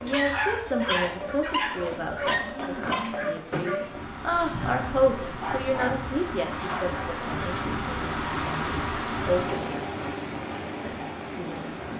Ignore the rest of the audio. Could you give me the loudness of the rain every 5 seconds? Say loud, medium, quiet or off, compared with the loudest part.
medium, loud, loud.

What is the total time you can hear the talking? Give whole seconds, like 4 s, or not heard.
11 s.